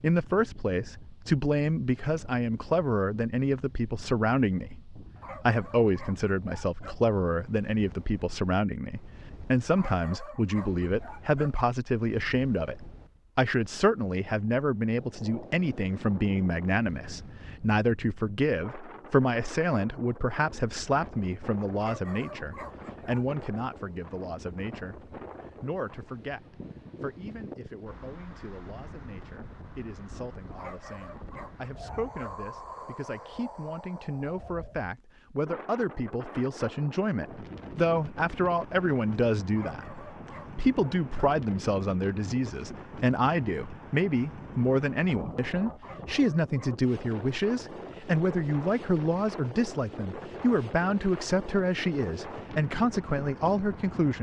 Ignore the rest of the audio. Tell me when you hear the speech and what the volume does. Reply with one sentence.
The speech can be heard from 0.0 to 54.1 s, getting quieter then louder.